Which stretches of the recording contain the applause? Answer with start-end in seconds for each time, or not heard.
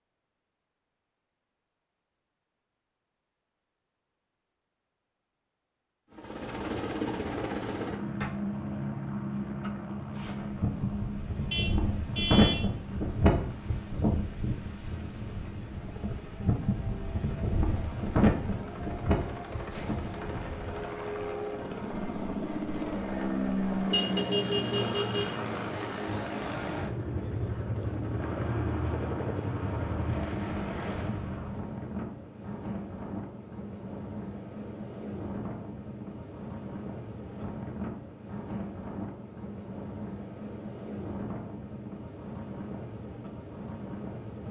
not heard.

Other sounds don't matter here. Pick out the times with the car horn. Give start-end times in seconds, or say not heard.
11.5-12.7, 23.9-25.4.